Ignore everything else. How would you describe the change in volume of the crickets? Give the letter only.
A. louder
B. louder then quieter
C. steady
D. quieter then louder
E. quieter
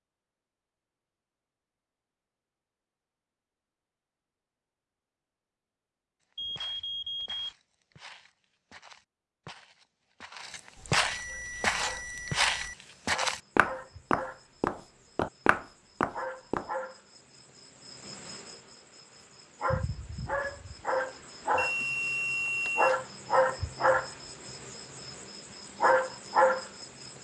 A.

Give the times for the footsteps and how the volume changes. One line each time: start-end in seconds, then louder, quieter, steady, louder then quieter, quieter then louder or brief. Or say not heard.
6.2-16.7 louder.